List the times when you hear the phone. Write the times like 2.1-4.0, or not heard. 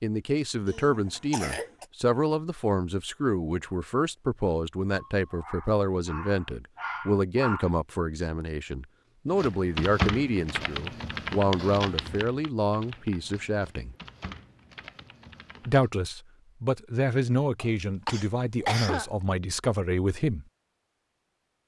not heard.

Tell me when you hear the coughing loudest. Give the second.
19 s.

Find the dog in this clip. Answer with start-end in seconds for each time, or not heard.
5.2-7.7.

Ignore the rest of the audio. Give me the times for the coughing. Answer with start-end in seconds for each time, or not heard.
0.7-1.9, 17.6-19.1.